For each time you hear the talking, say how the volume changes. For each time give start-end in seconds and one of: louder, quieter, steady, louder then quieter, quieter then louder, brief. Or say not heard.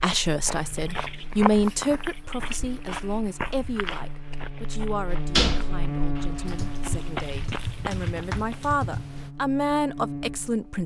0.0-10.8 quieter then louder.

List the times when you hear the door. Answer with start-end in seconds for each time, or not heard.
5.1-6.5.